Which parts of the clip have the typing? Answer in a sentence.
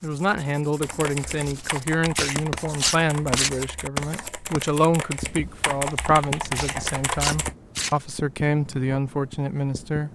The typing can be heard from 0.8 to 7.5 s.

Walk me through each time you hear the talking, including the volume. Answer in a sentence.
The talking can be heard from 0.0 to 10.1 s, at a steady volume.